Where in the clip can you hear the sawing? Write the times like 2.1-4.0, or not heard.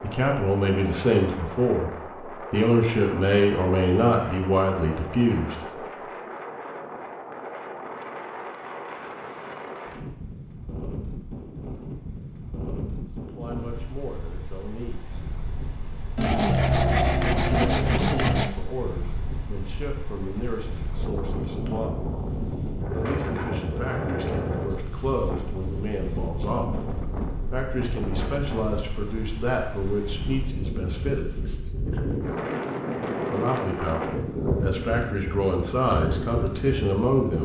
16.1-18.5.